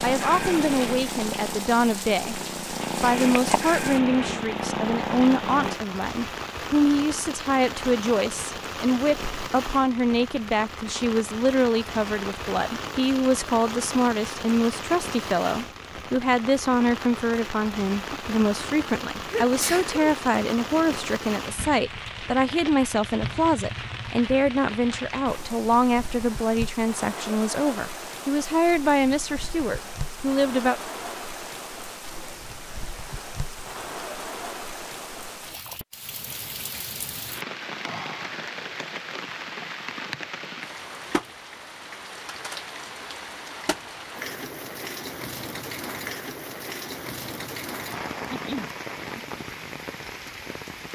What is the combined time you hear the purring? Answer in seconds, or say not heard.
6 s.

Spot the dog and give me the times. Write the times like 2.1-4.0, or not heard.
not heard.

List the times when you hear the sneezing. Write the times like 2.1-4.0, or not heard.
19.2-20.0, 48.3-49.2.